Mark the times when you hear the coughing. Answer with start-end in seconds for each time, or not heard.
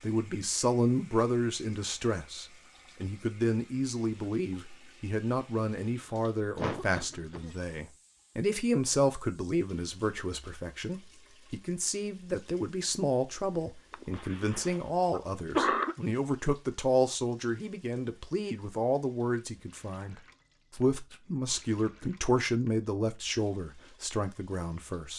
6.5-7.5, 13.9-15.9.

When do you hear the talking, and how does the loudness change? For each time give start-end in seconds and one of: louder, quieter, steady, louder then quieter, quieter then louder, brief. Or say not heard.
0.0-25.1 steady.